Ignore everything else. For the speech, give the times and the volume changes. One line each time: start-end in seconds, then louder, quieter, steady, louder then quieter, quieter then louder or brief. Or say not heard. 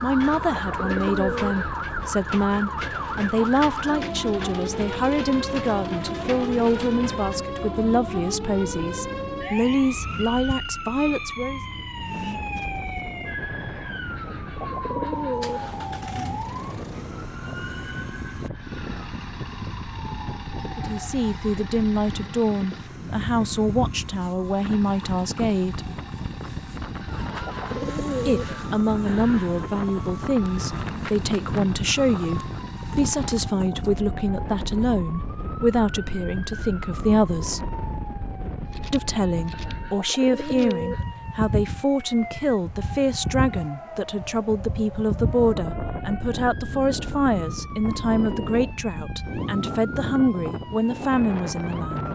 0.0-11.6 steady
20.8-25.9 steady
28.2-37.6 steady
38.9-52.1 steady.